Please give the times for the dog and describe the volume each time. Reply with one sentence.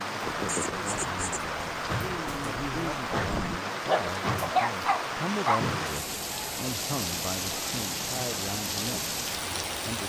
The dog can be heard from 0.5 to 5.6 s, getting louder.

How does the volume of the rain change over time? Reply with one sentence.
The loudness of the rain stays about the same.